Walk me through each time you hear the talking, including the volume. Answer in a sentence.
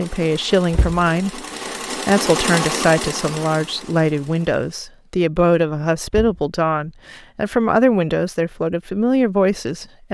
You can hear the talking from 0.0 to 10.0 s, at a steady volume.